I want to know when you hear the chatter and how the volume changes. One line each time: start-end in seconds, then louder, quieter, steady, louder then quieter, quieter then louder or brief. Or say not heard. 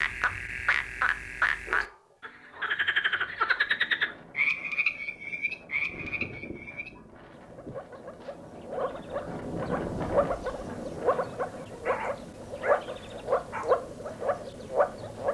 not heard.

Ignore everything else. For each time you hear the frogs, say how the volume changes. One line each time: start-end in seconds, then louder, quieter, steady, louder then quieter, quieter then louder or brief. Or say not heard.
0.0-15.3 quieter then louder.